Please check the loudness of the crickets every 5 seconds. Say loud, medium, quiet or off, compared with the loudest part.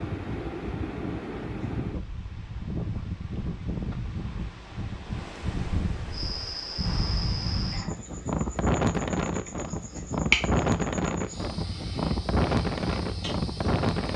off, medium, loud.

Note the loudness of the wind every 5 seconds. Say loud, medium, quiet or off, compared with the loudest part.
medium, loud, loud.